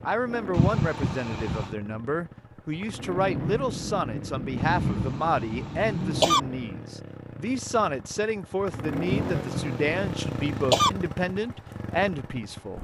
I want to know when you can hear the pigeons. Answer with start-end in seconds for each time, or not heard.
not heard.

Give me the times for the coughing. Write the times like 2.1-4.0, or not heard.
0.5-1.8, 4.5-6.4, 9.1-10.9.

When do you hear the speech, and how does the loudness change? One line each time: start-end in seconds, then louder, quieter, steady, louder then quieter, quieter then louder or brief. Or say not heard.
0.1-12.7 steady.